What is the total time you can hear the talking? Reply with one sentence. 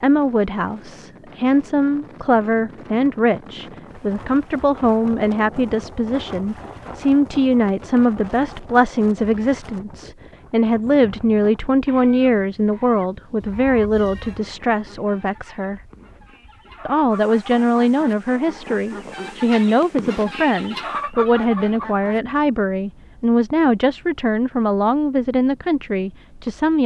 You can hear the talking for 26 seconds altogether.